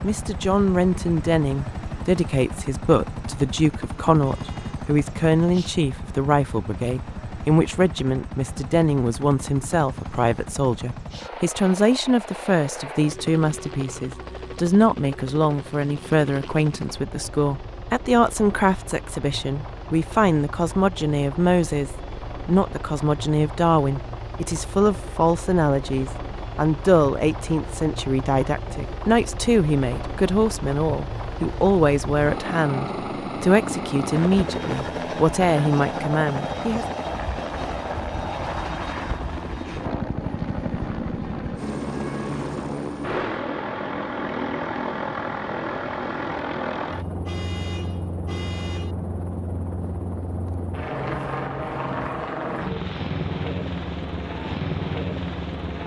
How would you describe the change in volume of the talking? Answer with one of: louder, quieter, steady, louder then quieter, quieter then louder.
steady.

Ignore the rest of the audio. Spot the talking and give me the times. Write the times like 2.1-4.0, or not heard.
0.0-36.9.